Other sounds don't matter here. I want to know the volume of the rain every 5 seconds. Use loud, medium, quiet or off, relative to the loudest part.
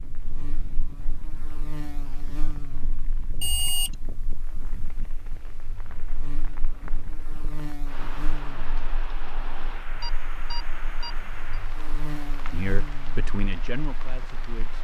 medium, loud, loud.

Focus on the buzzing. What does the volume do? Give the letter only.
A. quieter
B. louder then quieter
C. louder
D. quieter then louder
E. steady
D.